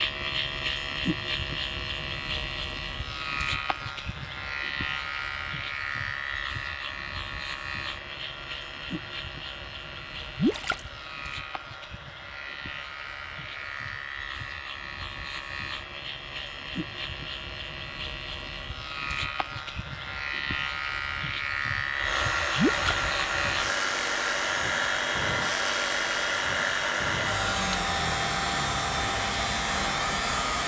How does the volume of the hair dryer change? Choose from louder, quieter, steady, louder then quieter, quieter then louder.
louder.